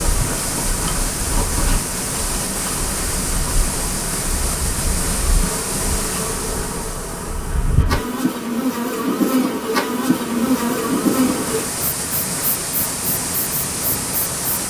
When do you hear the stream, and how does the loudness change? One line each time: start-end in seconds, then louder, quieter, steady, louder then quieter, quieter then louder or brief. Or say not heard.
0.0-14.6 quieter then louder.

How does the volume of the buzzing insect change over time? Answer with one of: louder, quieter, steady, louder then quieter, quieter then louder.
louder.